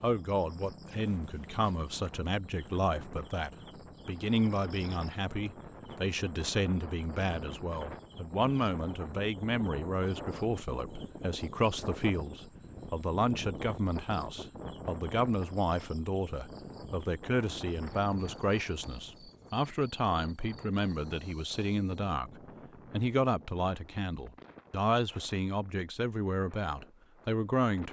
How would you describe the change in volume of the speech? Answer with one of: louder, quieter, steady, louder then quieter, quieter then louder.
steady.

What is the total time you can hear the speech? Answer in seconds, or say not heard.
27 s.